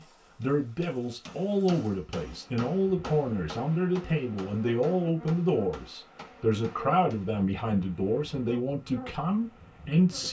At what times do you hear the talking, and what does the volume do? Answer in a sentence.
You can hear the talking from 0.0 to 10.2 s, at a steady volume.